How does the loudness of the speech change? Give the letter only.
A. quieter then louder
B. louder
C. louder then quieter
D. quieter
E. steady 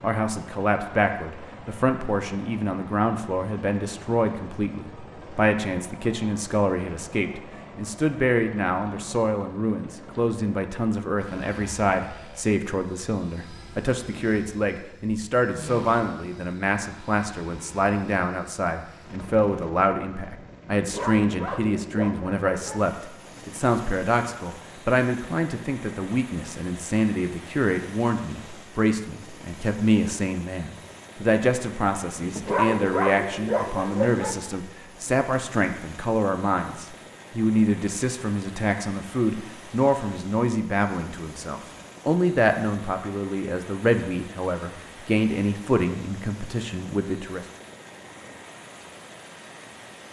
E.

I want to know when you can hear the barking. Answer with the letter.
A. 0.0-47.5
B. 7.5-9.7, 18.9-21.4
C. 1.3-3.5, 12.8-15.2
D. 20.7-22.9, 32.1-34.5
D.